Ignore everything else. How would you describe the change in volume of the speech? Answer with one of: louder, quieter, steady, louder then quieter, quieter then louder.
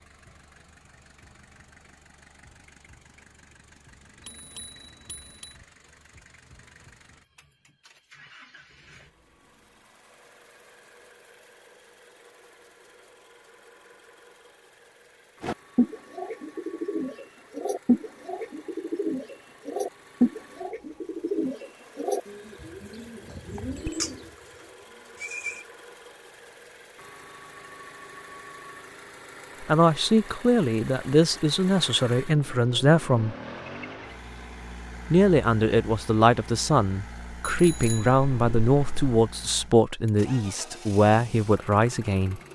steady.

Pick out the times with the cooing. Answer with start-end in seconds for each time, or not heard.
15.4-24.4, 25.1-25.6.